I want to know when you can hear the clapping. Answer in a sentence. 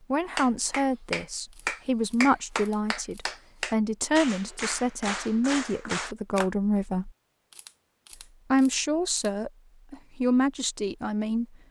The clapping can be heard from 0.3 to 6.5 s.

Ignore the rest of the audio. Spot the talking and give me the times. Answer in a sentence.
The talking can be heard from 0.1 to 7.1 s and from 8.5 to 11.4 s.